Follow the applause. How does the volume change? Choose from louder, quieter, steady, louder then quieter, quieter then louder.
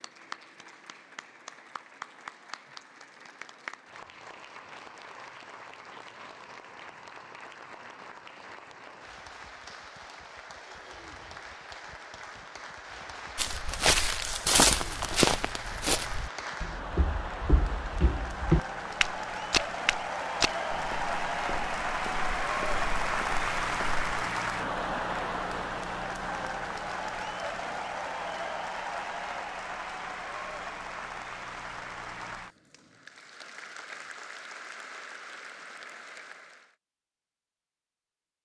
louder then quieter.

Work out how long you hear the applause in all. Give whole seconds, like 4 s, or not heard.
37 s.